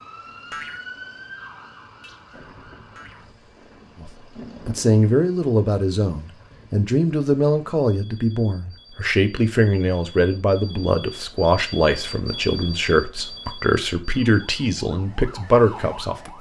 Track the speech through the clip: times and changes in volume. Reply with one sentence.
The speech can be heard from 4.0 to 16.3 s, at a steady volume.